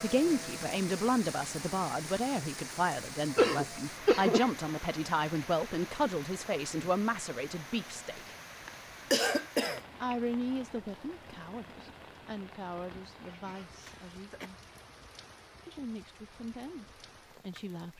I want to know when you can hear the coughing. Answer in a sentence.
You can hear the coughing from 3.4 to 4.5 s, from 8.7 to 9.8 s and from 13.4 to 14.5 s.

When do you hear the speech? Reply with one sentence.
The speech can be heard from 0.0 to 8.3 s, from 10.0 to 14.5 s and from 15.7 to 17.9 s.